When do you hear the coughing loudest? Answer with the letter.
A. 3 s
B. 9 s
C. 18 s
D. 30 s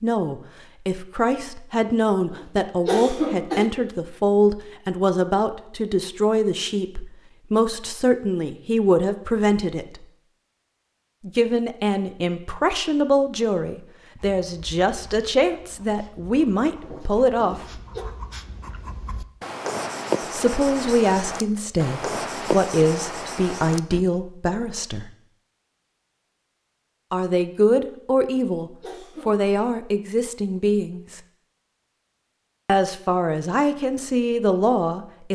A.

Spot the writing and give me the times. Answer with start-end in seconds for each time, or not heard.
14.2-24.1.